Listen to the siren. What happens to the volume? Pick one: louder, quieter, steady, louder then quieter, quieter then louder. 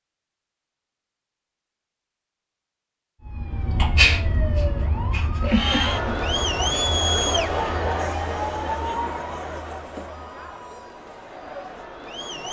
quieter then louder.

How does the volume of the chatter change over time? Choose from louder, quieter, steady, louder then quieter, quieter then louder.
quieter.